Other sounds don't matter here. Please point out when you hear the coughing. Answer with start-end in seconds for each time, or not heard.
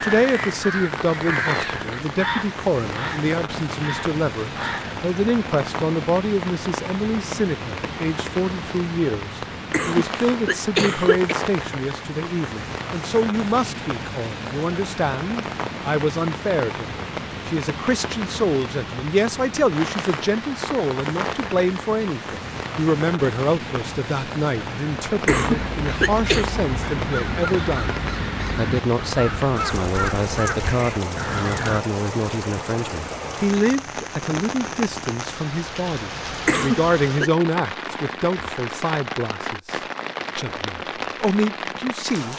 9.7-11.3, 25.2-26.5, 36.5-37.3.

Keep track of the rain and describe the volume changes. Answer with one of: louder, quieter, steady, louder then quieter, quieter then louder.
steady.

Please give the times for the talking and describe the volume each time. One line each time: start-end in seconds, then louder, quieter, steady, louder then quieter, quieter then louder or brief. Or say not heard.
0.0-42.3 steady.